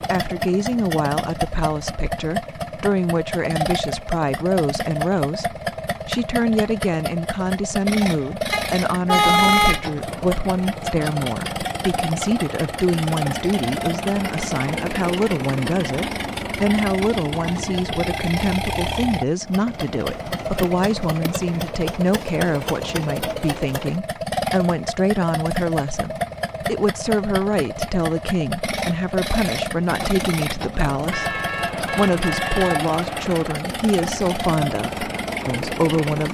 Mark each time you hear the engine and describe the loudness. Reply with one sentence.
You can hear the engine from 0.0 to 36.2 s, at a steady volume.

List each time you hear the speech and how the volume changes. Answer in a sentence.
The speech can be heard from 0.1 to 36.2 s, at a steady volume.